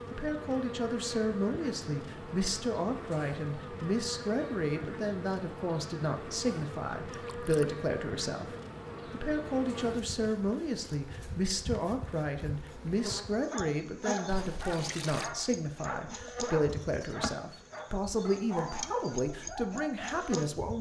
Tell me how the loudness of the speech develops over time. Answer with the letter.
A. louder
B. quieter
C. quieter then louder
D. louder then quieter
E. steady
E.